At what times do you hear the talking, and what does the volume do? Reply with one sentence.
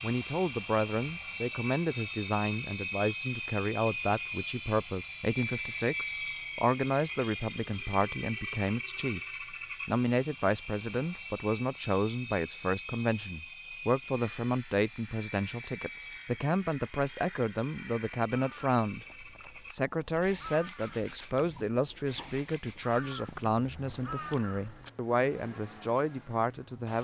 The talking can be heard from 0.0 to 26.9 s, at a steady volume.